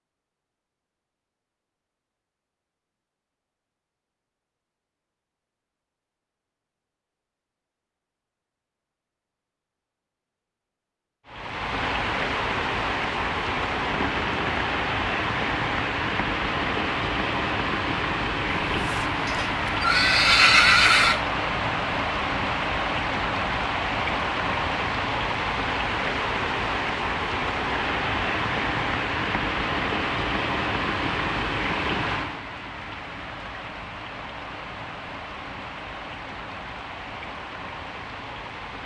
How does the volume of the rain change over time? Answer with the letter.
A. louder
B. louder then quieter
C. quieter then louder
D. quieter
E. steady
D.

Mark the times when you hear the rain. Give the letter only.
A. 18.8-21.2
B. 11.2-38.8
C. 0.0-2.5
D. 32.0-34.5
B.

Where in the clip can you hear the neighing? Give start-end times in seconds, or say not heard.
18.8-21.2.